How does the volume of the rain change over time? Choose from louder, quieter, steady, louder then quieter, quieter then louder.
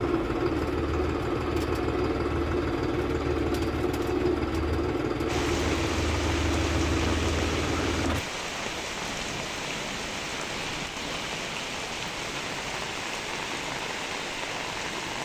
steady.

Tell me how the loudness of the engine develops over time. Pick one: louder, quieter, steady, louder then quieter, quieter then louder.
steady.